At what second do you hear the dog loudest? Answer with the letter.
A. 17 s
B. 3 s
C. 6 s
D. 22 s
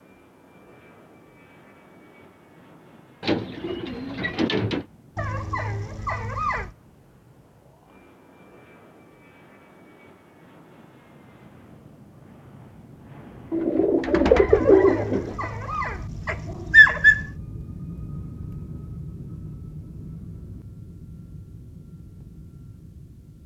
A.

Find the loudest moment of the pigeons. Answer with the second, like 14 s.
15 s.